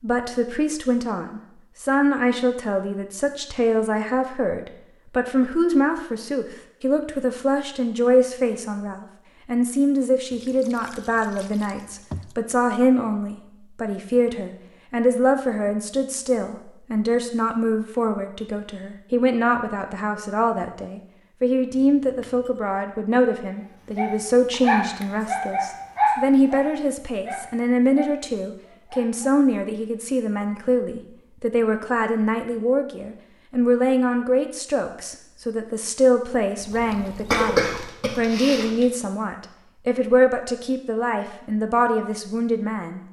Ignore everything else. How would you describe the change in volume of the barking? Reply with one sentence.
The volume of the barking goes down.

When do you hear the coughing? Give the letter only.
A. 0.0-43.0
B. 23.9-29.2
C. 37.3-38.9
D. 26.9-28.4
C.